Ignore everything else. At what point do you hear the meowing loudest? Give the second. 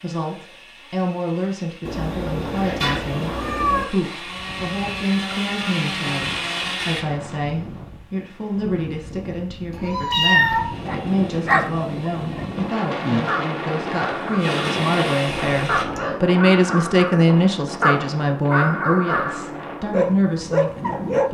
10 s.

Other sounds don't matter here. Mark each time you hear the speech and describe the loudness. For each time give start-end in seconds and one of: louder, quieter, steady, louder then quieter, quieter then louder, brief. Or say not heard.
0.0-21.2 louder.